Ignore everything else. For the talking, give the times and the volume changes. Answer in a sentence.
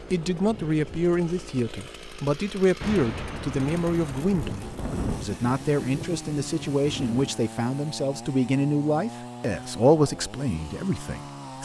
You can hear the talking from 0.1 to 11.6 s, at a steady volume.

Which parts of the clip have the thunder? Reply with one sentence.
You can hear the thunder from 2.8 to 7.4 s.